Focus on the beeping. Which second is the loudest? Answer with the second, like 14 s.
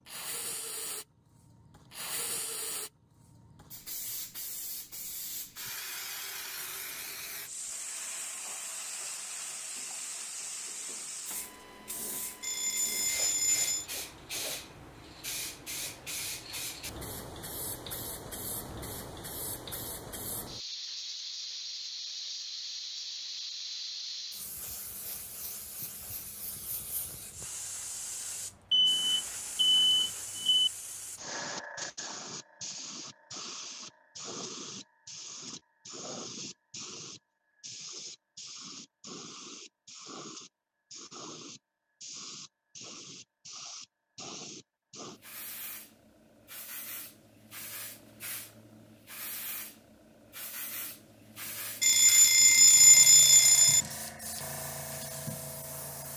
53 s.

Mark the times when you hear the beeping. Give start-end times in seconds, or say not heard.
12.4-13.8, 28.7-30.7, 51.8-53.9.